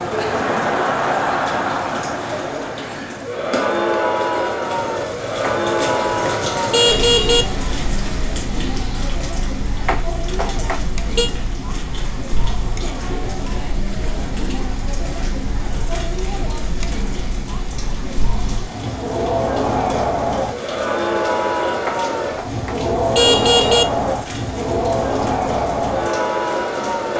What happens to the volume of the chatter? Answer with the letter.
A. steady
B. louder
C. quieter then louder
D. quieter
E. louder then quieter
C.